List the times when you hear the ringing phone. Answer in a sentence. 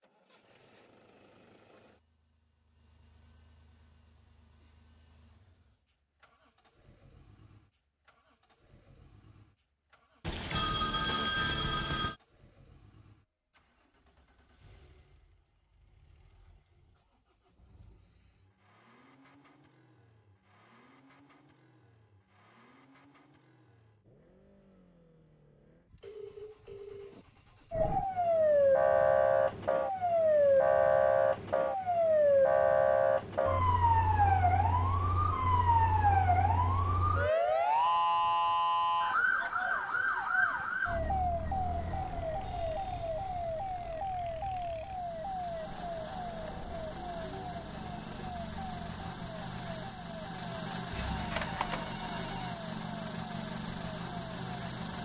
The ringing phone can be heard from 10.2 to 12.2 s, from 26.0 to 27.2 s and from 50.9 to 52.5 s.